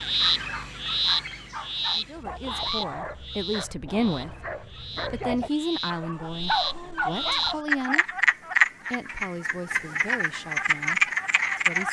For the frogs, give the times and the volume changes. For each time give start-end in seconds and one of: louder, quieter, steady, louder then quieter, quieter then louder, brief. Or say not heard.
0.0-11.8 quieter then louder.